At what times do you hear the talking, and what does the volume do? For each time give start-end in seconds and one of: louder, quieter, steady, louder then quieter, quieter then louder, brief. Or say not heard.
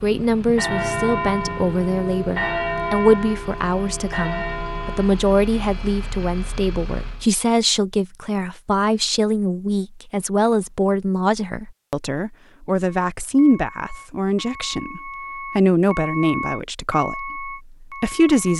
0.0-18.5 steady.